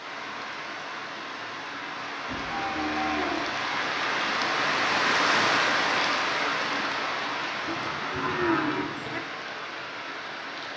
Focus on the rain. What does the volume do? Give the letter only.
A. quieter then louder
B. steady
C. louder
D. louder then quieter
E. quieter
D.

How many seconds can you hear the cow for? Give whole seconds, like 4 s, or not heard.
3 s.